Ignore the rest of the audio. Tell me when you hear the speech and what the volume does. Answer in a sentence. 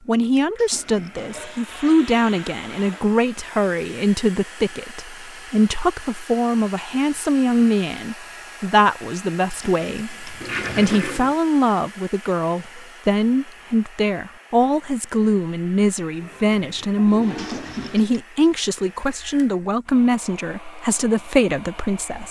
The speech can be heard from 0.1 to 22.2 s, at a steady volume.